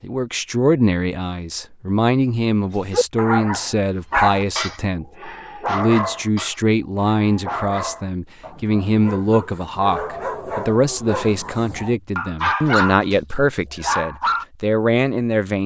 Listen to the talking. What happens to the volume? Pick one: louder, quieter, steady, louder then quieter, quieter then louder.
steady.